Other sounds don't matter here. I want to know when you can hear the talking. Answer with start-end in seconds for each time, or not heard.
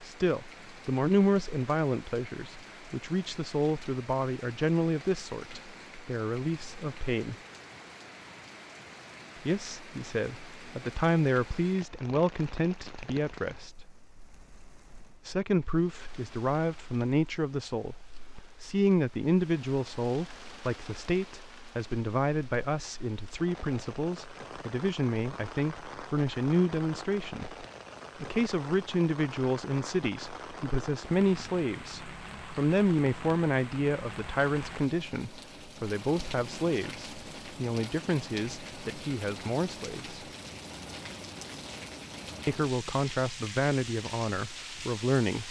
0.0-7.3, 9.4-13.8, 15.2-40.2, 42.5-45.4.